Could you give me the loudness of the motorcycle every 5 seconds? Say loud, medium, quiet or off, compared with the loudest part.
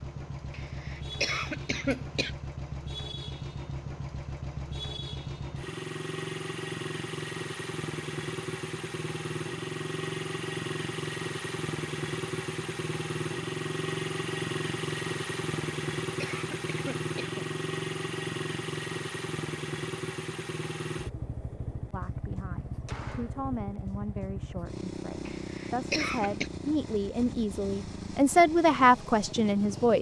medium, loud, loud, loud, medium, medium.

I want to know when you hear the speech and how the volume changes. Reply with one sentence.
The speech can be heard from 21.9 to 29.9 s, getting louder.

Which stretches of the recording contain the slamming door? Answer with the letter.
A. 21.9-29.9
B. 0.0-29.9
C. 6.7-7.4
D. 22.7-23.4
D.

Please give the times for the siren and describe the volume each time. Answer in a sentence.
You can't hear the siren here.